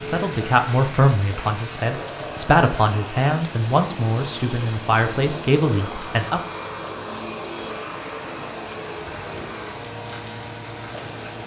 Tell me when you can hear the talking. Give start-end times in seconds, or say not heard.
0.0-6.4.